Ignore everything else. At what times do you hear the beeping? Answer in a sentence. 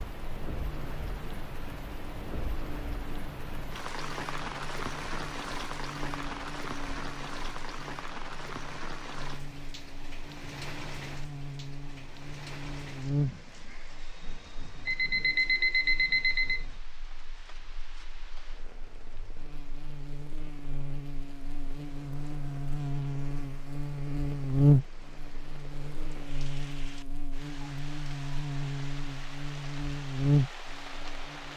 The beeping can be heard from 14.8 to 16.6 s.